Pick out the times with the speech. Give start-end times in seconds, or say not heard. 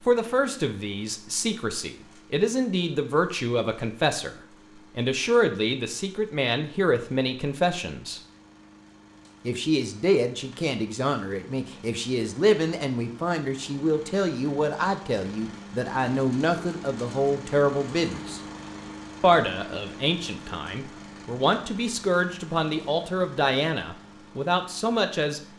0.0-8.2, 9.4-18.4, 19.2-25.5.